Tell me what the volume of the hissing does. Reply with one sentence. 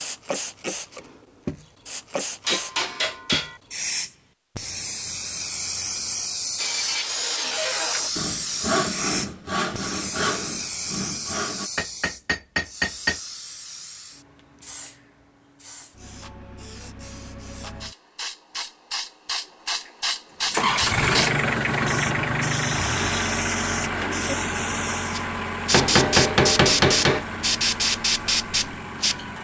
The loudness of the hissing goes down, then up.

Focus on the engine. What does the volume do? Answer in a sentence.
The volume of the engine goes down.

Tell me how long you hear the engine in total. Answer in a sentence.
The engine can be heard for 9 seconds in total.